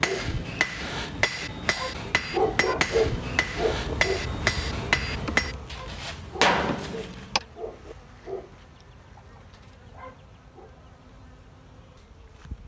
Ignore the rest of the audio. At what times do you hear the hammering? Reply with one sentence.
The hammering can be heard from 0.0 to 7.4 s.